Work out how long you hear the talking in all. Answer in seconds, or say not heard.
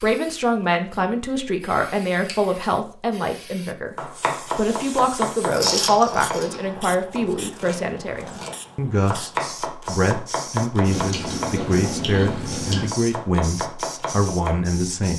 15 s.